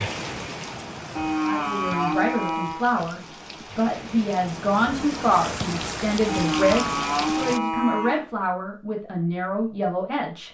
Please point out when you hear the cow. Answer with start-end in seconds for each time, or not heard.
1.1-2.9, 6.2-8.2.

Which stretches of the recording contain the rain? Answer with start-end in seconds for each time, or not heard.
0.0-7.6.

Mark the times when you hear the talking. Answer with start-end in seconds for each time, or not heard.
1.4-10.4.